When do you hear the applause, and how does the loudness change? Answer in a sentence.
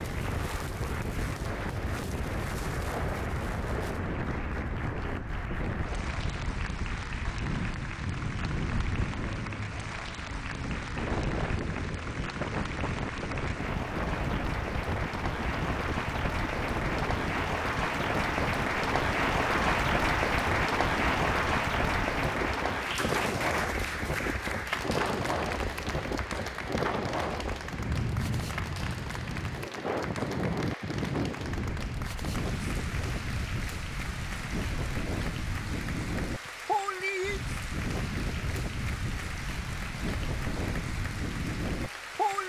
You can hear the applause from 0.0 to 42.4 s, getting louder then quieter.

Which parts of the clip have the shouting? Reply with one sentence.
The shouting can't be heard in this clip.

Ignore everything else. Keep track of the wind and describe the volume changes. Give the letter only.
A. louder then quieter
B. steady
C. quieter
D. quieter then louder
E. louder
B.